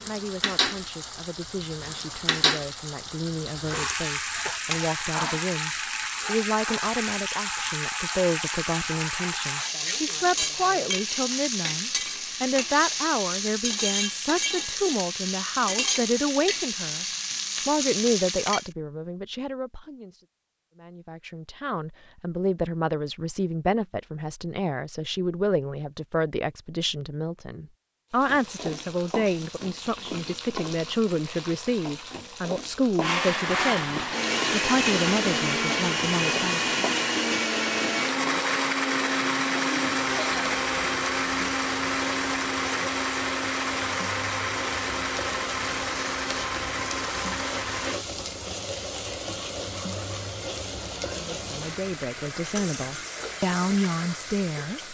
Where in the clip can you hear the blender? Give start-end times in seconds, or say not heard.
33.0-48.0.